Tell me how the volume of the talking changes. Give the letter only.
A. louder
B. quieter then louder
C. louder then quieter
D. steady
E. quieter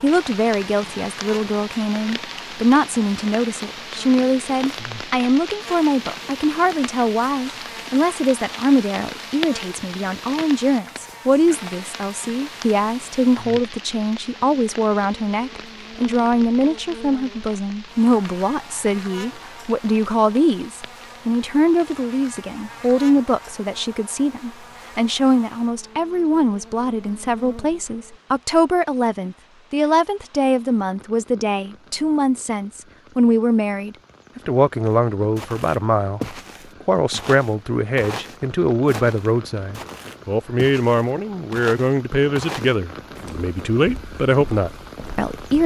D.